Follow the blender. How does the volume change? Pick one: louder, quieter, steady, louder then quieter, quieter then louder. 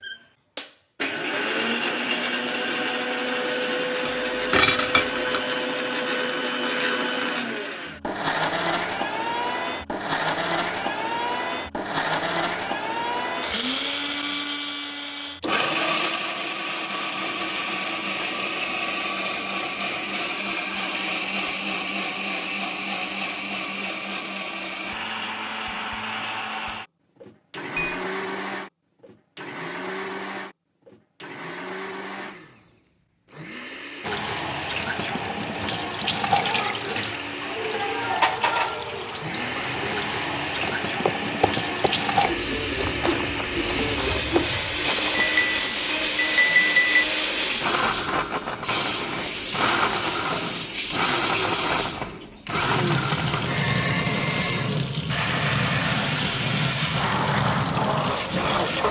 quieter then louder.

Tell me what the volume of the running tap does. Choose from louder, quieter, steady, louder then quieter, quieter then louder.
steady.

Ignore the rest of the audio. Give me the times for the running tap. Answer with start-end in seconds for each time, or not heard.
34.0-58.8.